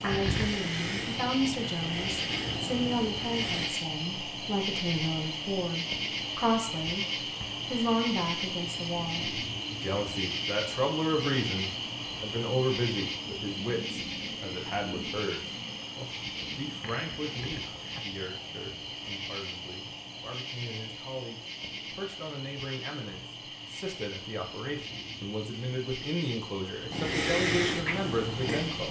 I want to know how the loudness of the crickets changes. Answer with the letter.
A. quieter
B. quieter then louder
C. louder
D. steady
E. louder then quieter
A.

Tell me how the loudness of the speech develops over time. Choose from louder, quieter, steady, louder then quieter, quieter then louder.
quieter then louder.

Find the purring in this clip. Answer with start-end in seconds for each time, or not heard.
0.0-3.7, 26.9-28.8.